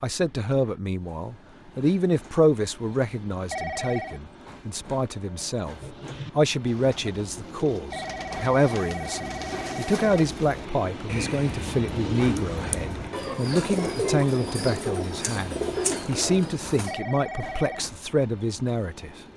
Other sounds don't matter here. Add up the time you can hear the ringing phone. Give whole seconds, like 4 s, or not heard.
4 s.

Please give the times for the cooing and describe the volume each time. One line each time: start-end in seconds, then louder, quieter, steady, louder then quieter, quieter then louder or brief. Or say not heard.
5.8-17.0 louder.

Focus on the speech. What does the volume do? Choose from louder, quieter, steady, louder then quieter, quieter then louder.
steady.